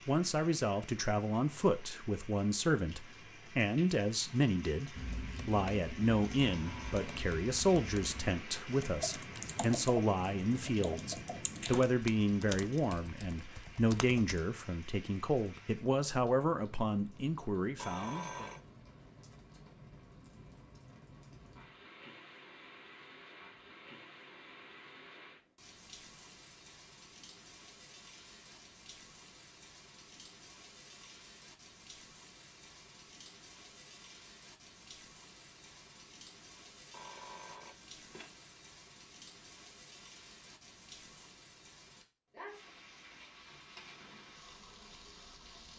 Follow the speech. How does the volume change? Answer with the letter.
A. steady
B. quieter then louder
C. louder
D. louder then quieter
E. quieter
A.